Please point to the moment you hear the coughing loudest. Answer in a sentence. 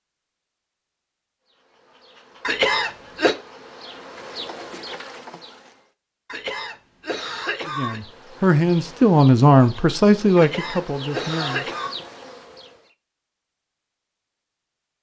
The loudest moment of the coughing is at 3 seconds.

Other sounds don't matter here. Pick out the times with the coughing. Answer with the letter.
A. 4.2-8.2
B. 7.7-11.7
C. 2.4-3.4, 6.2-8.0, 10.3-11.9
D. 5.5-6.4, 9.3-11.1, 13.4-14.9
C.